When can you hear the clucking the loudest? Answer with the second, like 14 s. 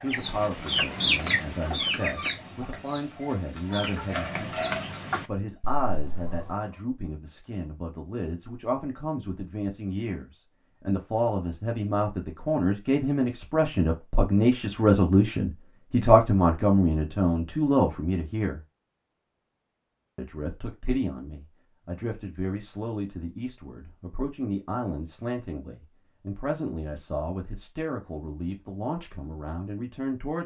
1 s.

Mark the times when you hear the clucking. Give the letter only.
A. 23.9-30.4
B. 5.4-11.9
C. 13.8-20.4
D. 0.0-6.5
D.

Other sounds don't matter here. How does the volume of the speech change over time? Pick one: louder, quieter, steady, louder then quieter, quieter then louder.
louder then quieter.